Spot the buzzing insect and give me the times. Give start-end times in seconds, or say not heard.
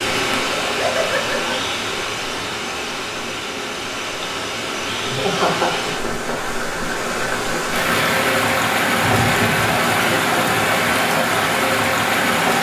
not heard.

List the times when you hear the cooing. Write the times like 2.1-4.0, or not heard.
not heard.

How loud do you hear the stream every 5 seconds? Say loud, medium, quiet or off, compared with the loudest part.
medium, loud, loud.